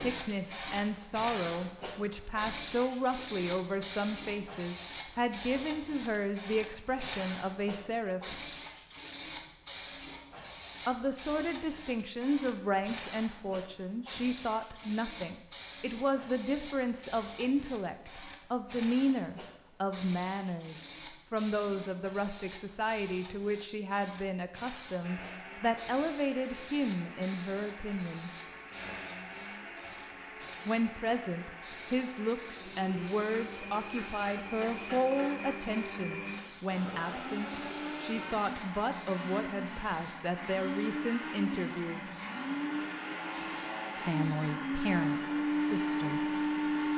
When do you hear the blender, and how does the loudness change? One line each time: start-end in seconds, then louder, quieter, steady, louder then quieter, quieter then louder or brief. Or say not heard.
25.0-46.9 louder.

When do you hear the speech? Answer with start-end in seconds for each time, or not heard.
0.0-8.3, 10.8-28.3, 30.6-42.0, 43.9-46.2.